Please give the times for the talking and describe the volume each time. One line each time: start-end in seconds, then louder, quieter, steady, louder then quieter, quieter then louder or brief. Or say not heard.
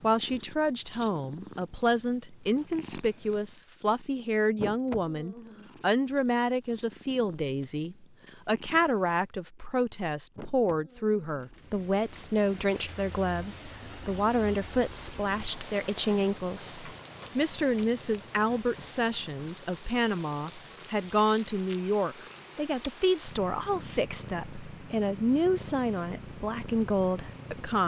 0.0-27.8 steady.